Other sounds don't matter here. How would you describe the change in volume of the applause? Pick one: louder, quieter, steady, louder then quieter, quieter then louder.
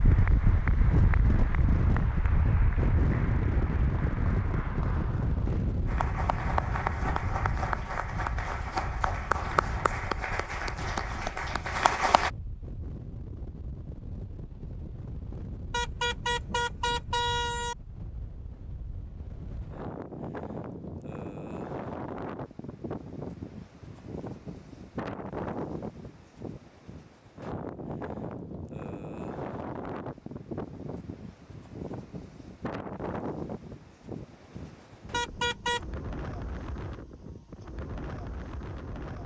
louder.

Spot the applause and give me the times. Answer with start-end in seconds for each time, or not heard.
0.0-12.3.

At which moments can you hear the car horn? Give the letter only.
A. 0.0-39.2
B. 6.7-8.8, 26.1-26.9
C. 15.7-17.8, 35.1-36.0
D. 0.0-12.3
C.